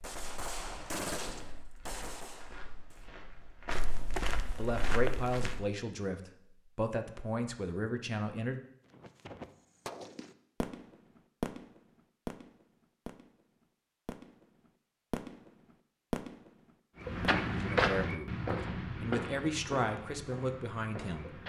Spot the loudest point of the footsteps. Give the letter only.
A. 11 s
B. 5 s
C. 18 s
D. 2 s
C.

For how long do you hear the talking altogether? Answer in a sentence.
You can hear the talking for 8 seconds altogether.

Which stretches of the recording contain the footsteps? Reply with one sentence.
You can hear the footsteps from 0.0 to 5.7 s and from 16.9 to 21.4 s.